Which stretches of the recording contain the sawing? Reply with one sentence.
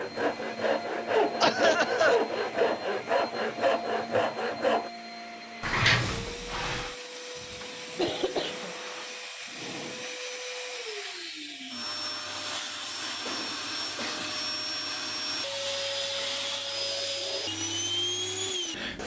The sawing can be heard from 0.0 to 4.9 s.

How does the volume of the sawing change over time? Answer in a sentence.
The volume of the sawing stays about the same.